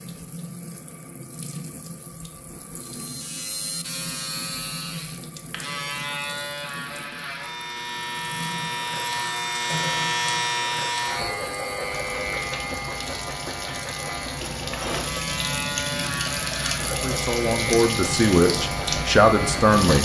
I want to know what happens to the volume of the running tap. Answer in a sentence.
The volume of the running tap goes up.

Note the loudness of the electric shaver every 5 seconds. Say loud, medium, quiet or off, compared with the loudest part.
medium, loud, loud, loud.